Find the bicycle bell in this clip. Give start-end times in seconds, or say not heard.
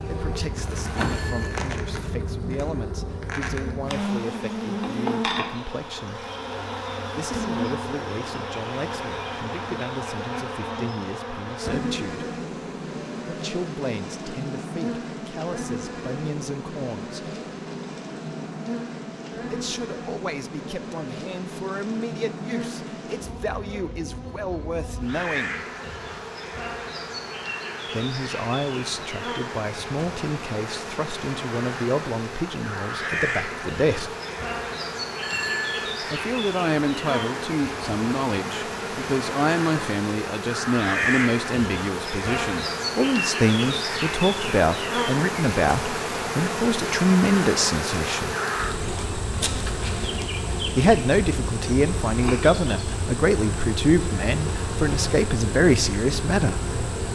0.9-1.6, 35.2-36.0.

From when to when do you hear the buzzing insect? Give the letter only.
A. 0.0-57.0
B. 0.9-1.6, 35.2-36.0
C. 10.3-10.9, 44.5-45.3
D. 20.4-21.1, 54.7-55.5
A.